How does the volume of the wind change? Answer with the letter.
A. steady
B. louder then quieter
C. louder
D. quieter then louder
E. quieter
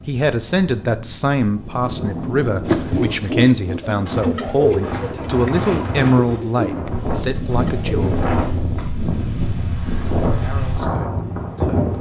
C.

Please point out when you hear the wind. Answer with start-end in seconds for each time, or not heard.
0.0-11.9.